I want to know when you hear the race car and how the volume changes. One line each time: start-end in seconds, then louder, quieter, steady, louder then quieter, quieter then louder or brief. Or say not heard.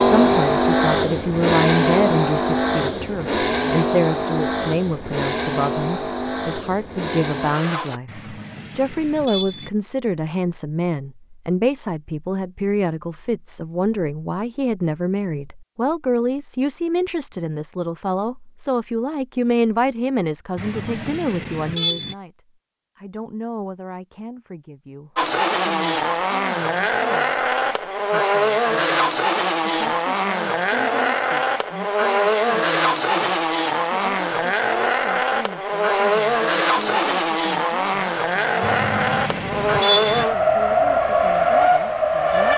0.0-8.0 quieter
25.1-42.5 steady.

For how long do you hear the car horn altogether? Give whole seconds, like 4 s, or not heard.
5 s.